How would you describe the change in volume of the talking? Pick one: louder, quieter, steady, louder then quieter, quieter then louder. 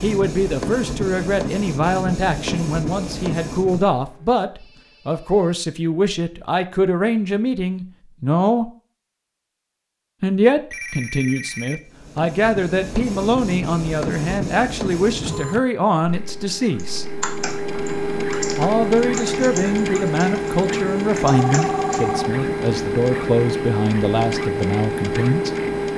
steady.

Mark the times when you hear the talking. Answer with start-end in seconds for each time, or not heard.
0.0-8.7, 10.2-17.1, 18.6-25.5.